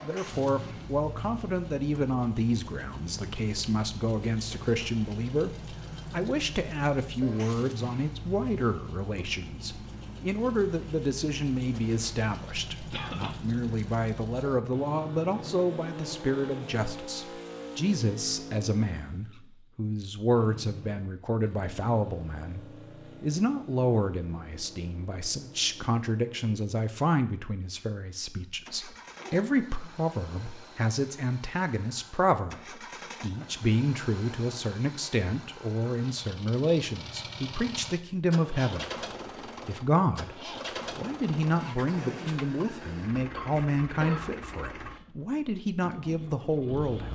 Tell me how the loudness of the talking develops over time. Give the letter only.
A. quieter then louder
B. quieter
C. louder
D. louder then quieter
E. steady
E.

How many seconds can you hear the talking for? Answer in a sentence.
The talking can be heard for 46 seconds in total.